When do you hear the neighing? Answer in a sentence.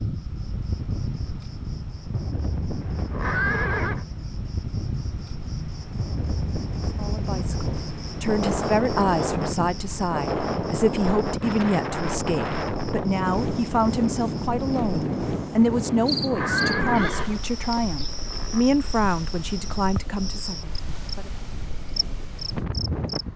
The neighing can be heard from 2.8 to 4.0 s and from 16.1 to 18.6 s.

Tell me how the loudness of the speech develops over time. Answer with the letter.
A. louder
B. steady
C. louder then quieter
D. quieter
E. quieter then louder
B.